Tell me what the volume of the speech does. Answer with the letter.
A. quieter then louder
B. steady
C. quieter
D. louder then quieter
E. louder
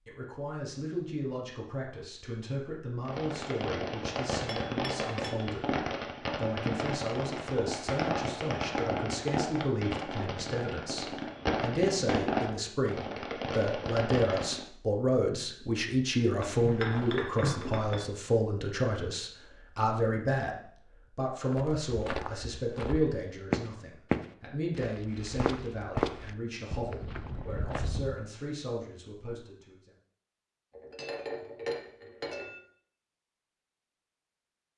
D.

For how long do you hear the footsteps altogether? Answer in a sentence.
The footsteps can be heard for 7 seconds in total.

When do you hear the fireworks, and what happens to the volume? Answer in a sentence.
You can hear the fireworks from 3.0 to 14.7 s, at a steady volume.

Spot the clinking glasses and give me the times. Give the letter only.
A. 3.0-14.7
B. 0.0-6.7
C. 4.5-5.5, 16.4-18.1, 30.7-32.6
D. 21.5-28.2
C.